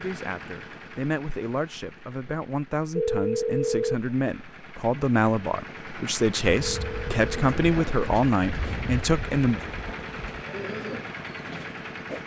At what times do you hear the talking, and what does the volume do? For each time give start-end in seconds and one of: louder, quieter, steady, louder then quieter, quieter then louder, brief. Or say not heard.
0.0-9.6 louder.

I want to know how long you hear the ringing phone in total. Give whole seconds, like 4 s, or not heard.
2 s.